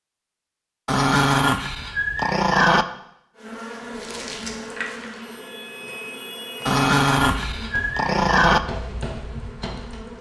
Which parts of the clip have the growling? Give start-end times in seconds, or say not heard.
0.8-2.9, 6.7-8.6.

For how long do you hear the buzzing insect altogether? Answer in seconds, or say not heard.
7 s.